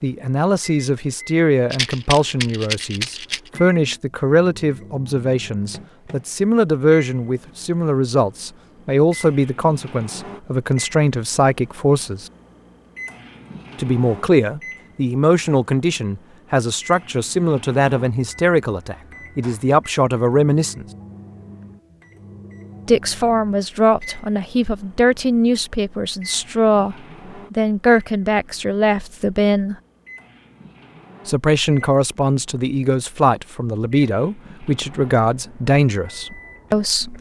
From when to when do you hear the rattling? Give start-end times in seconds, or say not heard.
1.7-3.5.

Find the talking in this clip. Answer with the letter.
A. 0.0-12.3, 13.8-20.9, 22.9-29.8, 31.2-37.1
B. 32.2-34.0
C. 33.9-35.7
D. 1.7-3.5
A.